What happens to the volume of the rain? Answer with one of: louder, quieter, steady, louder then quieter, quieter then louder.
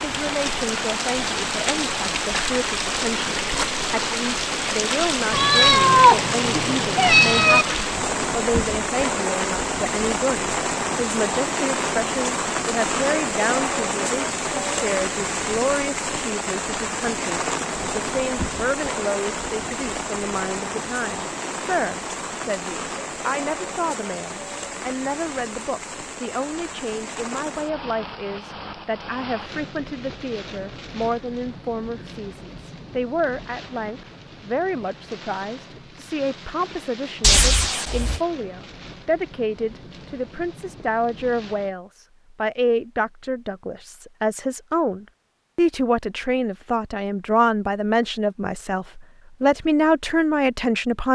quieter.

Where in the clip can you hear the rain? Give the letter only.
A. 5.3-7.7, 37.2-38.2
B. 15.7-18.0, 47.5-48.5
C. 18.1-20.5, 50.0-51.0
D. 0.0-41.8
D.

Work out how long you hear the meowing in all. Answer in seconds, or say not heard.
3 s.